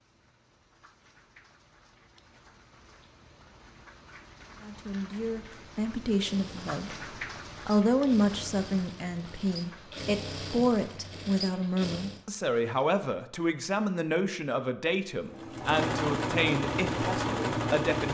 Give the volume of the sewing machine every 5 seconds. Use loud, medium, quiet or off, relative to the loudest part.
off, quiet, medium, loud.